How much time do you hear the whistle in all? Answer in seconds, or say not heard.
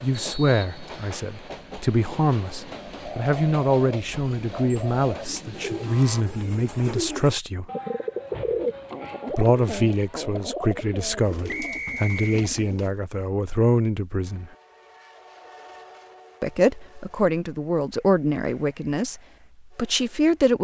2 s.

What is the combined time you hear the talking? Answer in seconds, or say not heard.
17 s.